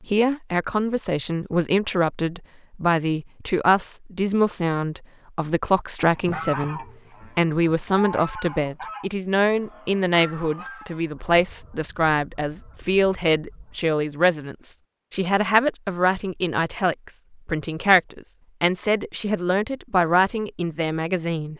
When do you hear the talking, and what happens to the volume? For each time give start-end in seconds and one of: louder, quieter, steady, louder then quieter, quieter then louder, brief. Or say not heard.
0.0-21.5 steady.